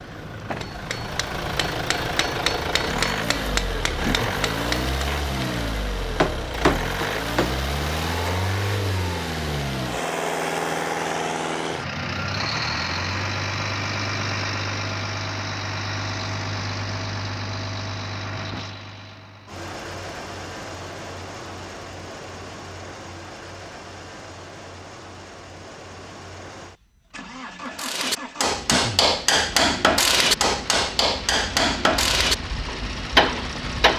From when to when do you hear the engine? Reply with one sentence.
The engine can be heard from 0.0 to 33.9 s.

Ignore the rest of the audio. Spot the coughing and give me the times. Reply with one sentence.
The coughing can be heard from 4.0 to 4.5 s and from 28.6 to 29.1 s.